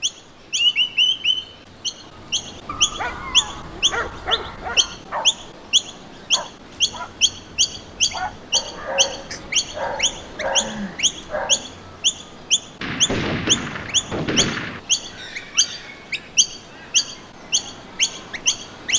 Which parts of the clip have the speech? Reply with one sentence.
The speech can't be heard in this clip.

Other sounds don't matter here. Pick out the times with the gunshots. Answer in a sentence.
The gunshots can be heard from 12.8 to 14.8 s.